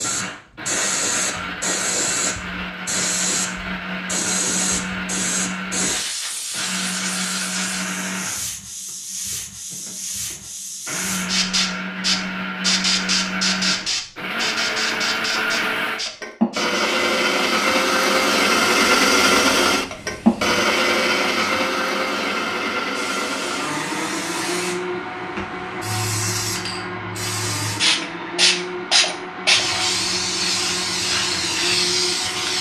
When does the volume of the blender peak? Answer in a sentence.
The loudest moment of the blender is at 19 seconds.